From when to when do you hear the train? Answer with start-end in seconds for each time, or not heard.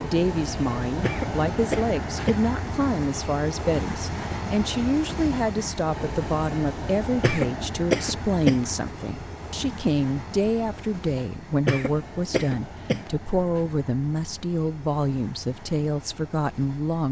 0.0-17.0.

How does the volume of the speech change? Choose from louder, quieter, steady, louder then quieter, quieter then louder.
steady.